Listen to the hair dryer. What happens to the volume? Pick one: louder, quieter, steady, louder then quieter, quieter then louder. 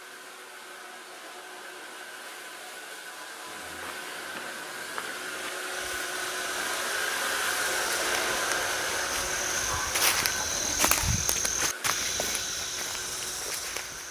louder then quieter.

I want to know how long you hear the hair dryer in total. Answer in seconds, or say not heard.
14 s.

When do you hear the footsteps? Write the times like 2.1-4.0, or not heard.
3.5-14.0.